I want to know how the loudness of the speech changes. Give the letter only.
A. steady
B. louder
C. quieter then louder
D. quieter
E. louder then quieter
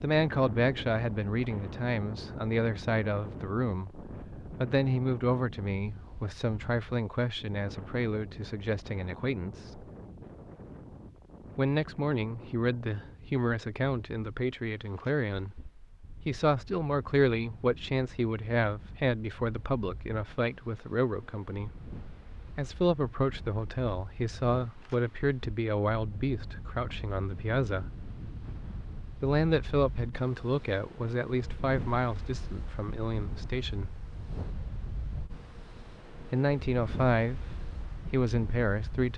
A.